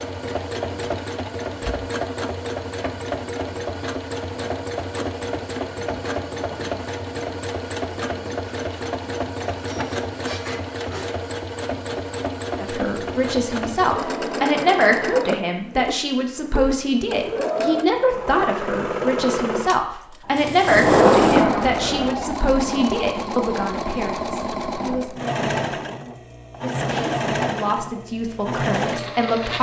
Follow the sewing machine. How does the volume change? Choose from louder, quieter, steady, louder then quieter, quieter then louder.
steady.